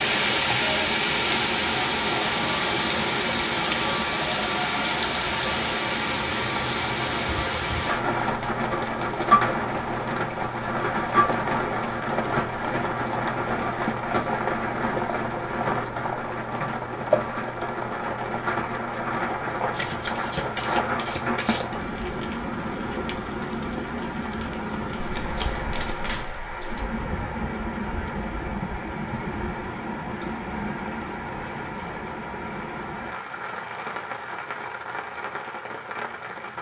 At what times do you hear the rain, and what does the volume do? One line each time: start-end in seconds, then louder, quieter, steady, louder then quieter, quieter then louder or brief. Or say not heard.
0.0-36.5 quieter.